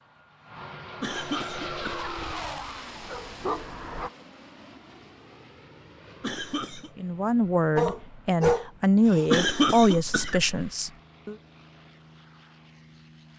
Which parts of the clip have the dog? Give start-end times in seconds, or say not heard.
1.7-4.1, 7.8-9.2.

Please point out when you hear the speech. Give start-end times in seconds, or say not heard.
7.0-11.3.